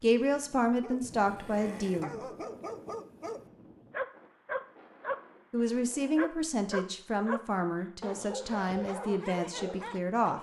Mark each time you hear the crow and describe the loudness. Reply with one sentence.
You can't hear the crow here.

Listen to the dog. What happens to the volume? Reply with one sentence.
The volume of the dog goes up, then down.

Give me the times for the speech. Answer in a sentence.
You can hear the speech from 0.0 to 2.2 s and from 5.5 to 10.3 s.